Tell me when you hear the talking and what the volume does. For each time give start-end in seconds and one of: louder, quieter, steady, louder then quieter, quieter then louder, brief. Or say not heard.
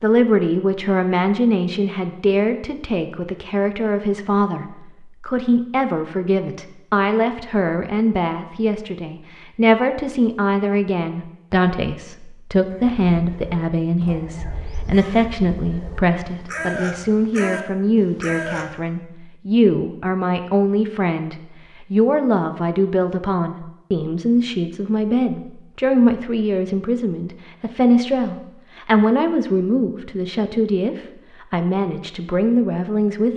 0.0-33.3 steady.